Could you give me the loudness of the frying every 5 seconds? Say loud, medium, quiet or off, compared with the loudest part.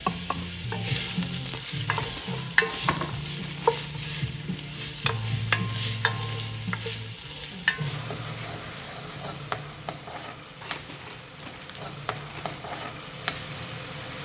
loud, loud, medium.